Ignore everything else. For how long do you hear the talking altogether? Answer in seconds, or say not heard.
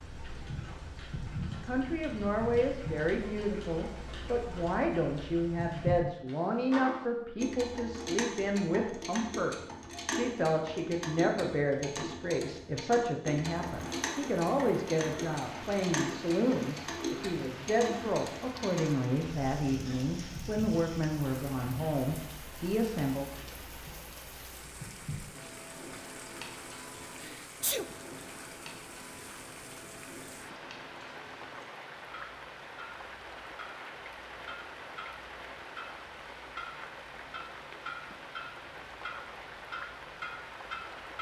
22 s.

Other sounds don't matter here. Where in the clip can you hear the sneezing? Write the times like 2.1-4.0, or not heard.
27.2-27.9.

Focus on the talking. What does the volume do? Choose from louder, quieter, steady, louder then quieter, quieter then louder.
steady.